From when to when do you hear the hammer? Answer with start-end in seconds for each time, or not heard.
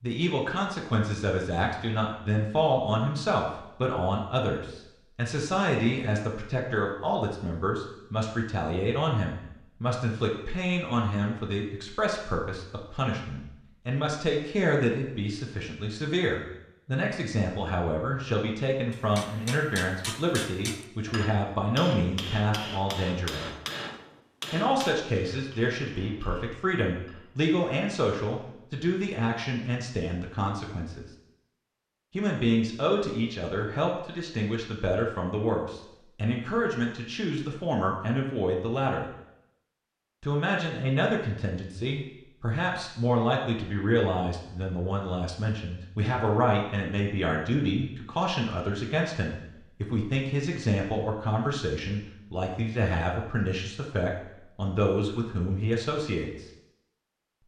18.9-27.3.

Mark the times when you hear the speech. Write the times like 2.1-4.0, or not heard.
0.0-23.6, 24.5-31.1, 32.1-39.1, 40.2-56.5.